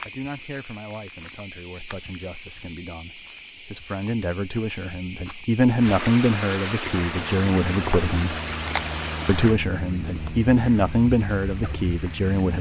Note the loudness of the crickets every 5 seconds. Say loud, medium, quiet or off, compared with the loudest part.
loud, loud, medium.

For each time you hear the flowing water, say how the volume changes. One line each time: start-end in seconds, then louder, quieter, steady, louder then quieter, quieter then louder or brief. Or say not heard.
5.8-12.5 quieter.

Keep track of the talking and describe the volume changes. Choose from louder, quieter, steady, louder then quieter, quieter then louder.
louder.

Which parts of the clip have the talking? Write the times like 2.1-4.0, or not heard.
0.0-8.3, 9.2-12.5.